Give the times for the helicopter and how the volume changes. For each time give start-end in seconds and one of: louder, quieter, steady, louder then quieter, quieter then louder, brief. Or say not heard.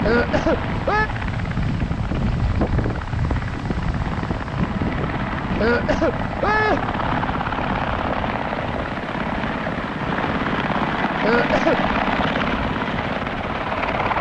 0.0-14.1 louder.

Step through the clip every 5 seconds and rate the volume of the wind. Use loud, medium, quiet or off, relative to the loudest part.
loud, medium, medium.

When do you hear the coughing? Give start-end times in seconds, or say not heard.
0.0-1.1, 5.5-7.0, 11.2-11.9.